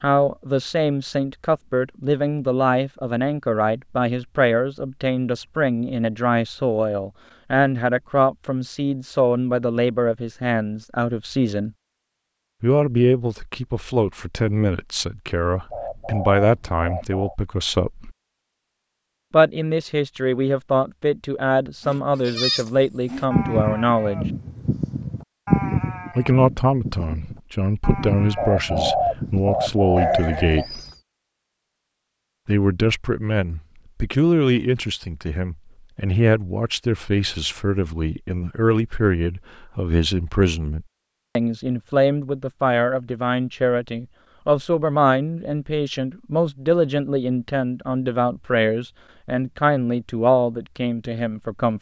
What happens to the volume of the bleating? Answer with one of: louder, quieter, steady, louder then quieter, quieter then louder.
quieter.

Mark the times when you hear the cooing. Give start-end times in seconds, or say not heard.
15.7-17.4, 28.4-30.6.